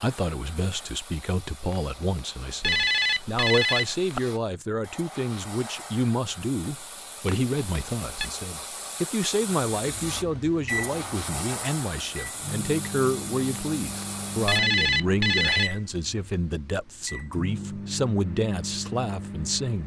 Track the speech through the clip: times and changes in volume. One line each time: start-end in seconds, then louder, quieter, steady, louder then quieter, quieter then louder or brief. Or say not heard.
0.0-19.8 steady.